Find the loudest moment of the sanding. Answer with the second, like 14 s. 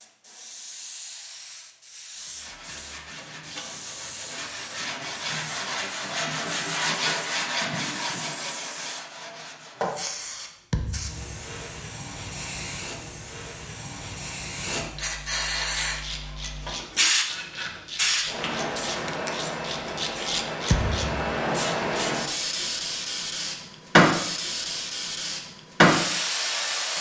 7 s.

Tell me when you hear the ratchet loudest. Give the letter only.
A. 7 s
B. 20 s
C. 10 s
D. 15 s
B.